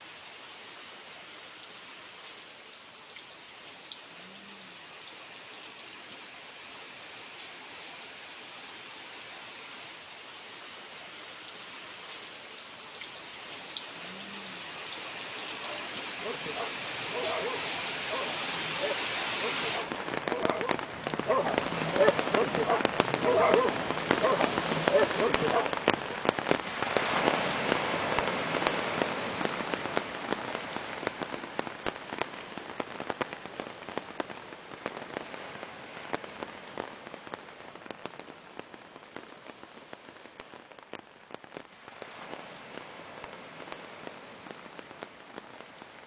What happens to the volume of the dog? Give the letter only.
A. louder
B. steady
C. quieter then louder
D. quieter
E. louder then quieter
A.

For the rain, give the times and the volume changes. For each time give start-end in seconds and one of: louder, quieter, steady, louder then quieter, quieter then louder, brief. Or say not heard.
0.0-46.0 louder then quieter.